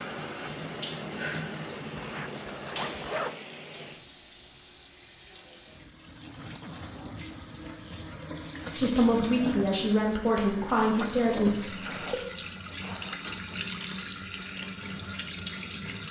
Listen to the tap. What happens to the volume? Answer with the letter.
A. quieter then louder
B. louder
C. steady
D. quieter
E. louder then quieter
A.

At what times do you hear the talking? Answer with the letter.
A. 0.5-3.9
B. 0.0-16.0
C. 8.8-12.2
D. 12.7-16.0
C.